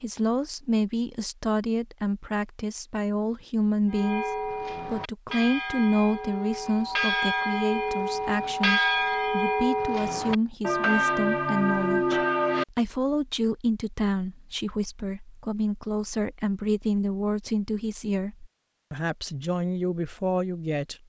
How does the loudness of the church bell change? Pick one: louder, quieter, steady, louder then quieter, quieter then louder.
louder.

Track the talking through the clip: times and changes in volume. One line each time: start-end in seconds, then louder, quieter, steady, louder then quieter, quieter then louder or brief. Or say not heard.
0.0-21.0 steady.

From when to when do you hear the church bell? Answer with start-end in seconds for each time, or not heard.
3.9-12.7.